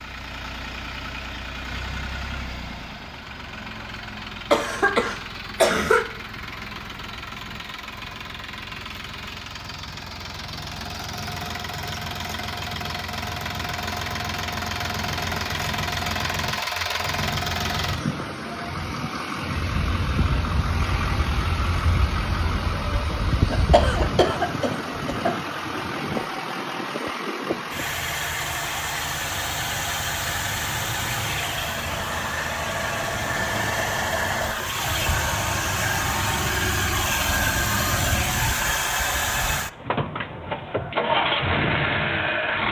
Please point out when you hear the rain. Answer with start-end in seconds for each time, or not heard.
not heard.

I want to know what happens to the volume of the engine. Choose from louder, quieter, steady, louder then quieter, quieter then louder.
louder.